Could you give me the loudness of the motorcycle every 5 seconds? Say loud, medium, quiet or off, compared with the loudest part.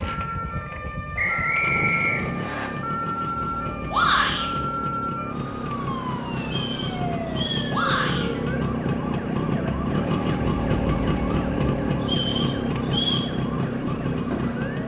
medium, loud, loud.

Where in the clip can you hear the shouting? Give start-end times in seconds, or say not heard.
3.9-4.5, 7.7-8.3.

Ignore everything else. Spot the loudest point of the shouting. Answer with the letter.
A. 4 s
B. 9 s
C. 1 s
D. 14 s
A.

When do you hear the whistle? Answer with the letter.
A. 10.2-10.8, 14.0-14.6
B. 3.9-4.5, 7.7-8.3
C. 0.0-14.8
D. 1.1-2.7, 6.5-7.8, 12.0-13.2
D.